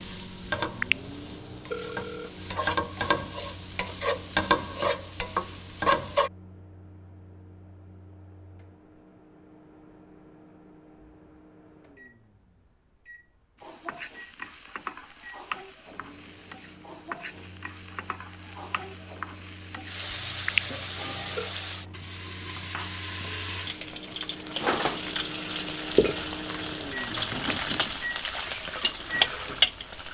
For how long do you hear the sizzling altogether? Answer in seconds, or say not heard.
23 s.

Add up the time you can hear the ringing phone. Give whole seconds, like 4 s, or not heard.
3 s.